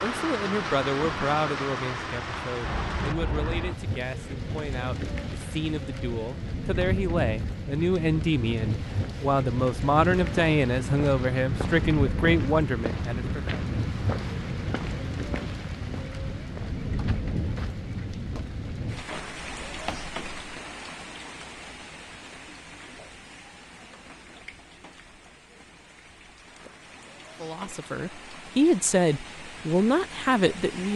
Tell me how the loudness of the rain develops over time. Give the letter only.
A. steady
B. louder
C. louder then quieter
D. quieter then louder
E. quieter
E.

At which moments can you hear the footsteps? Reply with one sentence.
You can hear the footsteps from 10.1 to 20.6 s.